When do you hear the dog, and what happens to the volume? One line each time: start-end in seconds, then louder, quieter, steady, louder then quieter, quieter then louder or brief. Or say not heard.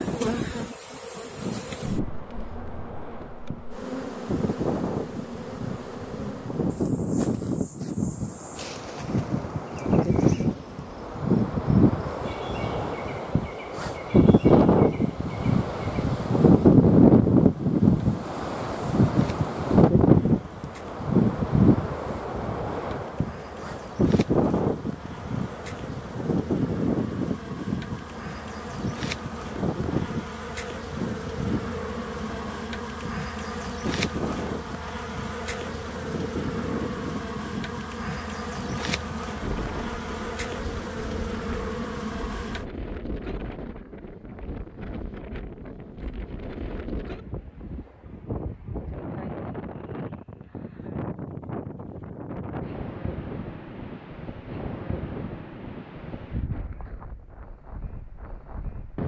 not heard.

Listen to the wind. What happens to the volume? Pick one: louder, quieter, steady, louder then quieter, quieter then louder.
louder then quieter.